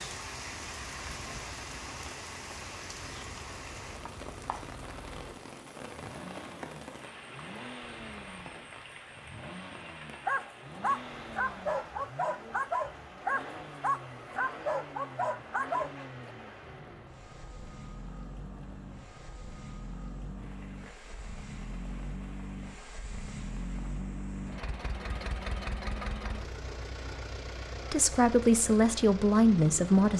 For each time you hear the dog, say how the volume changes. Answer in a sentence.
You can hear the dog from 10.2 to 16.3 s, at a steady volume.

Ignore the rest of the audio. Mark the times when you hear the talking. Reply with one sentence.
The talking can be heard from 27.9 to 30.1 s.